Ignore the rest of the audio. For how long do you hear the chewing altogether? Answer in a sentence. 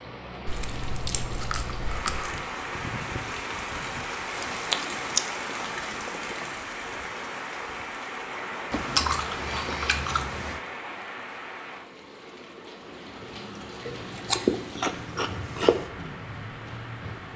You can hear the chewing for 8 seconds altogether.